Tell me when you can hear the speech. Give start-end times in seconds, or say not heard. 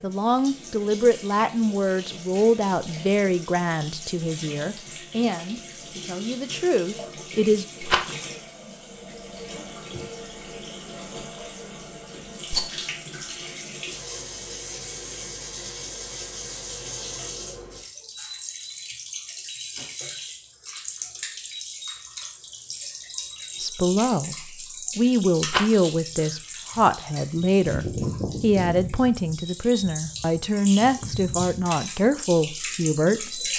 0.0-7.7, 23.6-24.4, 24.9-33.5.